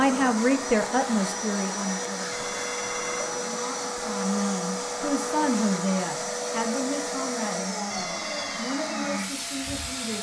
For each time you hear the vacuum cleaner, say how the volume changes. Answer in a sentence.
You can hear the vacuum cleaner from 0.0 to 10.1 s, at a steady volume.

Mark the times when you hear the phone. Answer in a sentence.
You can hear the phone from 2.3 to 3.4 s and from 7.9 to 8.7 s.